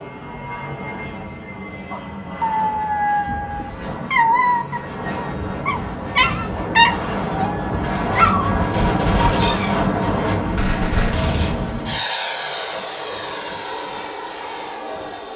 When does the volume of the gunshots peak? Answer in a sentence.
The volume of the gunshots peaks at 9 seconds.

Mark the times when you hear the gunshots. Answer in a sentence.
You can hear the gunshots from 7.8 to 11.8 s.